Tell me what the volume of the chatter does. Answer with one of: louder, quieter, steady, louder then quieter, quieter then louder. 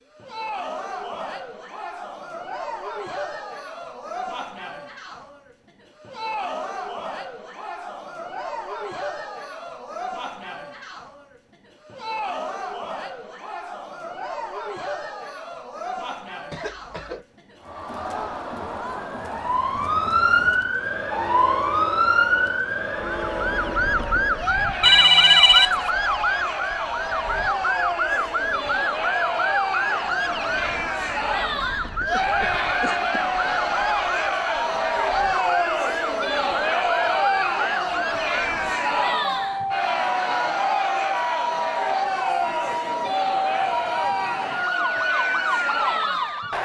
louder.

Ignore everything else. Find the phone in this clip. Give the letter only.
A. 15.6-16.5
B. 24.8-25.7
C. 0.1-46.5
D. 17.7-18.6
B.